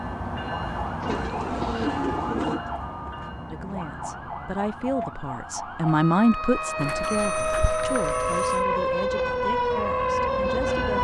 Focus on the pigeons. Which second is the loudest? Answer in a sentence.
The loudest moment of the pigeons is at 2 seconds.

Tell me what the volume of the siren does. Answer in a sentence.
The loudness of the siren goes up.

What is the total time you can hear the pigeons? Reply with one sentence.
You can hear the pigeons for 3 seconds altogether.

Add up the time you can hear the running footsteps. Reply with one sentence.
The running footsteps can't be heard in this clip.